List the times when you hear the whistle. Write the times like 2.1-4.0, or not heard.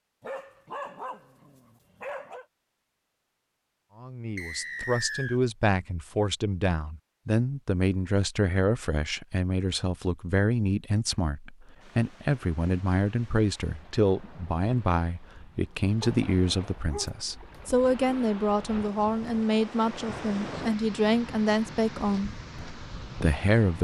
4.3-5.4.